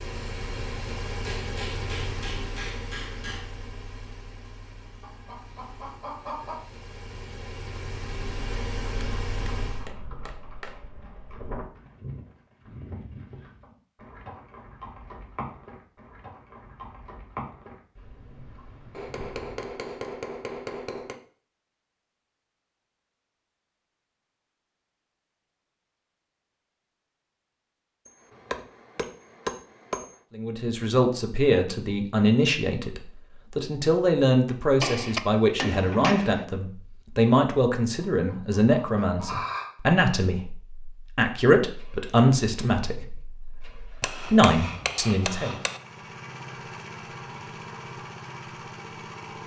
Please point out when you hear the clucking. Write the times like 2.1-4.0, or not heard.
5.0-6.6, 38.0-39.7.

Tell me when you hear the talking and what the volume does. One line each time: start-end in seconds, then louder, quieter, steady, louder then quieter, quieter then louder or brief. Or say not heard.
30.4-45.6 steady.